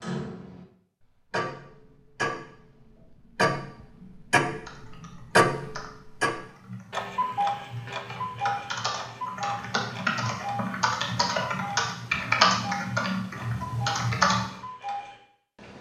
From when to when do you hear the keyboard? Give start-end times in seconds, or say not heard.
4.7-14.5.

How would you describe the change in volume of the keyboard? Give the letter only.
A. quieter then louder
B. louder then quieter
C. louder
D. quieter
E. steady
C.